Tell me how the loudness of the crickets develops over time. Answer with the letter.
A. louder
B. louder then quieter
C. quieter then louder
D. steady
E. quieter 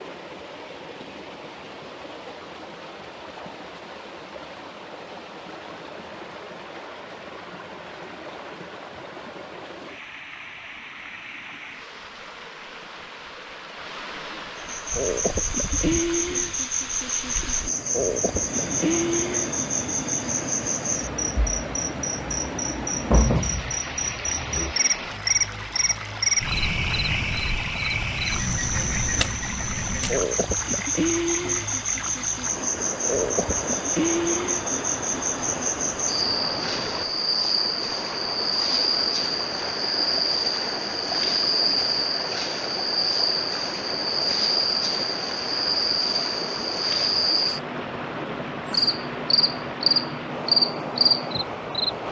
D.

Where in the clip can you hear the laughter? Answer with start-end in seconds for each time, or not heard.
not heard.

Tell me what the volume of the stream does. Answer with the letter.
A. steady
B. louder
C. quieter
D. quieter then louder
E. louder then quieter
B.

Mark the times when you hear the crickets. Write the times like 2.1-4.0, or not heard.
14.7-51.9.